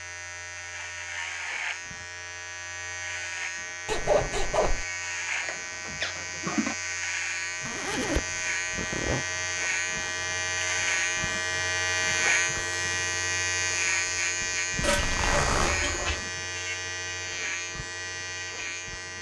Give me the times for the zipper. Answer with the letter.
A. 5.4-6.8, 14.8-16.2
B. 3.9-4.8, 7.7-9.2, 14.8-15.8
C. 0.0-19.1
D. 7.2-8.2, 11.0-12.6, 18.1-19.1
B.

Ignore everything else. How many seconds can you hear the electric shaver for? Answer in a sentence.
You can hear the electric shaver for 19 seconds altogether.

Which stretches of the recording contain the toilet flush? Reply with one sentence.
The toilet flush can be heard from 5.4 to 6.8 s and from 14.8 to 16.2 s.